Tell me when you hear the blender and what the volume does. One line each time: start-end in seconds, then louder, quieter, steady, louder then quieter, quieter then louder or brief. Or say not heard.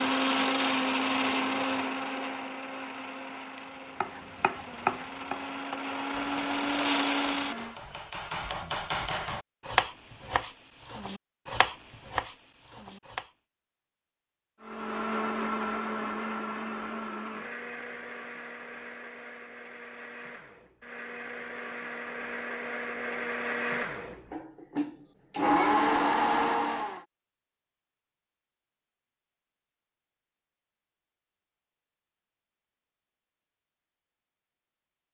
0.0-7.8 quieter then louder
14.6-27.1 quieter then louder.